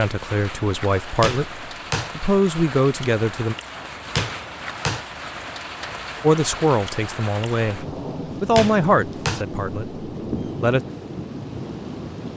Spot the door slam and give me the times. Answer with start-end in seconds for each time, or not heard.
1.2-2.1, 4.2-5.0, 8.6-9.4.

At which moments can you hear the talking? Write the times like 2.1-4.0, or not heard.
0.0-3.5, 6.2-10.8.